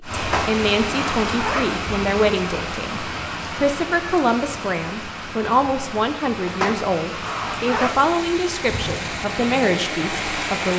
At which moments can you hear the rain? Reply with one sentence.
The rain can be heard from 0.0 to 10.7 s.